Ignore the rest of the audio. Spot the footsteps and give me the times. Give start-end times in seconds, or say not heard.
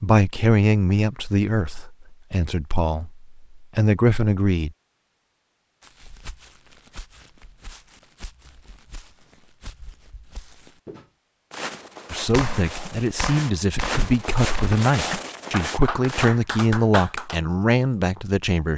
5.8-16.3.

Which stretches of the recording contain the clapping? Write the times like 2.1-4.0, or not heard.
12.3-17.4.